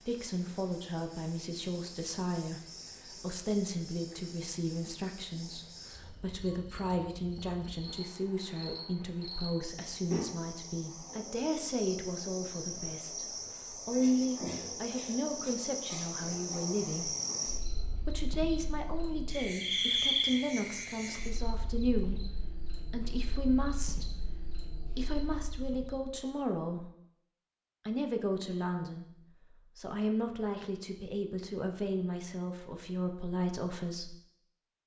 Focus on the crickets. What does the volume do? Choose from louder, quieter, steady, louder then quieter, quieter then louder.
louder then quieter.